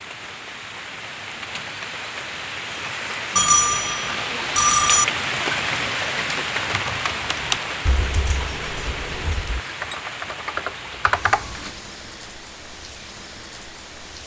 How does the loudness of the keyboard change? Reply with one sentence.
The loudness of the keyboard goes down, then up.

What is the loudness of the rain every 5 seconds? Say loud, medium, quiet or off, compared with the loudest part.
loud, loud, medium.